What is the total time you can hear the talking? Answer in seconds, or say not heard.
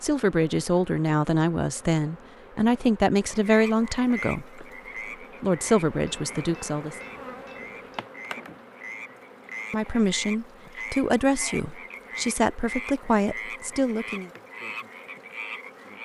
11 s.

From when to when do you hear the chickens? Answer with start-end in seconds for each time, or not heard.
not heard.